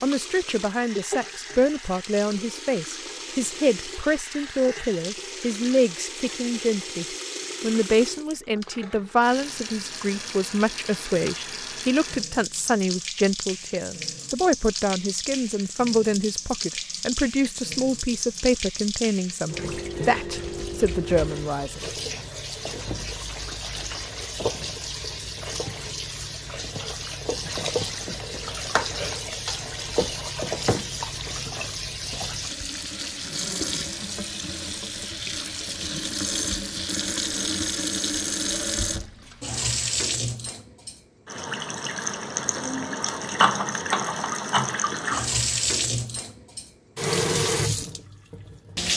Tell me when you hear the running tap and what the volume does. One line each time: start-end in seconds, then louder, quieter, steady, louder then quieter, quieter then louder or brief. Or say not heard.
0.0-48.9 louder.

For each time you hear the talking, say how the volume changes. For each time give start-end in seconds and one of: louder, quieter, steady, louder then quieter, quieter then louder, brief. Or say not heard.
0.0-21.9 steady.